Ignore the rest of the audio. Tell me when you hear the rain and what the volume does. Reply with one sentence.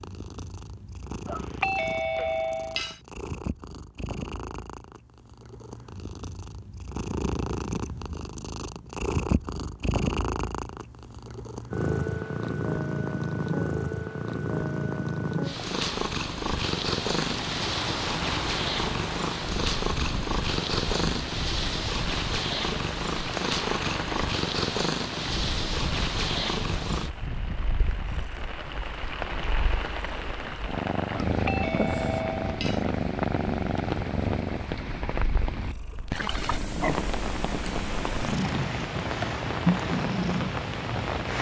You can hear the rain from 17.1 to 41.3 s, at a steady volume.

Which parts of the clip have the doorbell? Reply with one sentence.
You can hear the doorbell from 1.2 to 3.0 s and from 31.2 to 32.9 s.